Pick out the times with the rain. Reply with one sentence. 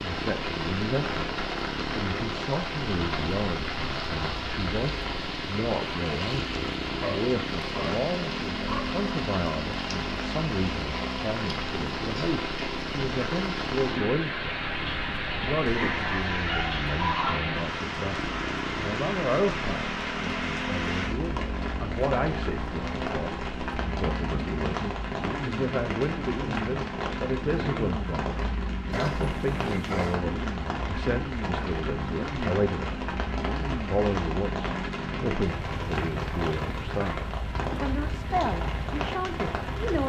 You can hear the rain from 0.0 to 40.0 s.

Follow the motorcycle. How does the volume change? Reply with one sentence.
The loudness of the motorcycle stays about the same.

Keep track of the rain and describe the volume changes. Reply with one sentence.
The volume of the rain stays about the same.